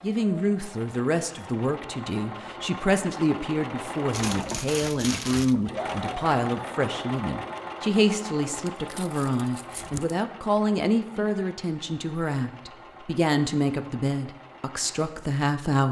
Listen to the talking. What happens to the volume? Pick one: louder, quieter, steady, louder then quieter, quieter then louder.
steady.